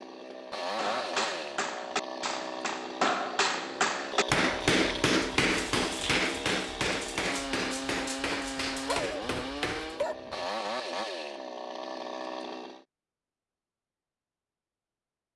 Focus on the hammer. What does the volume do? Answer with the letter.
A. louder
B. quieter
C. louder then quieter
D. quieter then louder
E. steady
C.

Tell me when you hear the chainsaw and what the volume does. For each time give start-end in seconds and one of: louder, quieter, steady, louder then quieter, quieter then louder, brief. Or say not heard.
0.0-12.8 steady.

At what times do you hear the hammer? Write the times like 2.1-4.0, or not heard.
0.8-10.1.